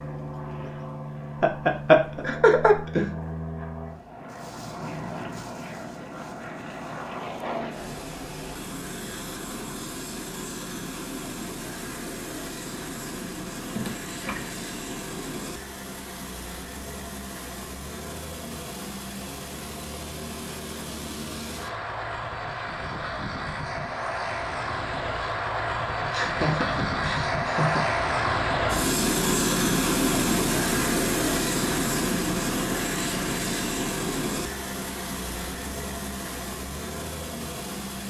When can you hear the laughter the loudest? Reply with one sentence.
The loudest moment of the laughter is at 2 seconds.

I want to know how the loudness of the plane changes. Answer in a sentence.
The volume of the plane goes up.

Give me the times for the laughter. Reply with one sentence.
You can hear the laughter from 1.4 to 3.1 s, from 13.8 to 14.5 s and from 26.1 to 27.9 s.